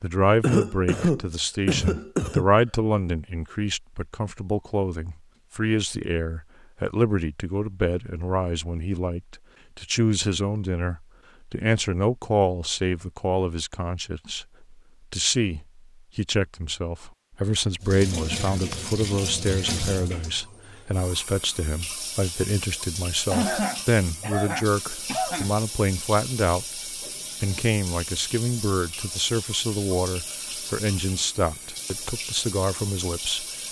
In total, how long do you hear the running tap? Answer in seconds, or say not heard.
16 s.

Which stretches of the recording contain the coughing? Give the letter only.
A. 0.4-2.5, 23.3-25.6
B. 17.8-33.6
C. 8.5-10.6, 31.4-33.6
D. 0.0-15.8
A.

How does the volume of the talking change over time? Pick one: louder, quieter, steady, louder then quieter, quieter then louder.
steady.